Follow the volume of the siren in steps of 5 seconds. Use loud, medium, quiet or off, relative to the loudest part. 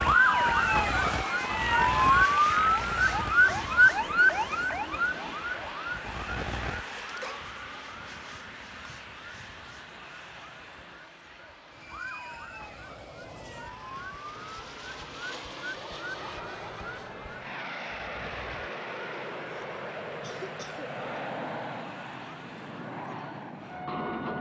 loud, quiet, quiet, quiet, quiet.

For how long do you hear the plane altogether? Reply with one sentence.
The plane can be heard for 24 seconds in total.